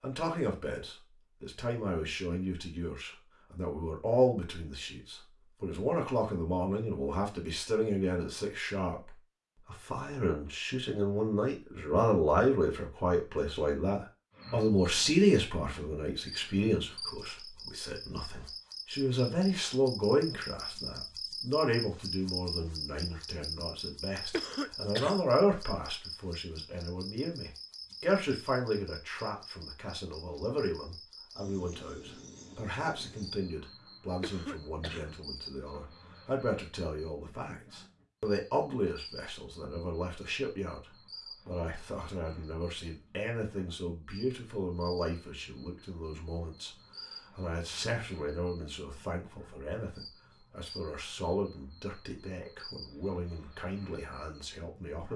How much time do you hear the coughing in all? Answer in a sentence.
The coughing can be heard for 2 seconds in total.